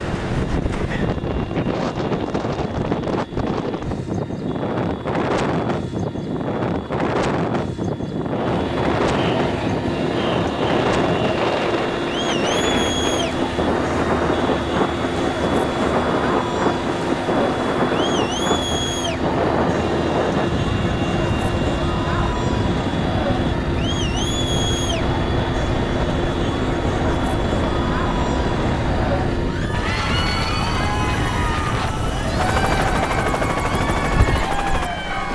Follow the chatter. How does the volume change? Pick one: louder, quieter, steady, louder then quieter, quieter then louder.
steady.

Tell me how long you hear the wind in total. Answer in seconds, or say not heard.
35 s.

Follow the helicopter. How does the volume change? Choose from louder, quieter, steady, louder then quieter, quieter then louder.
louder.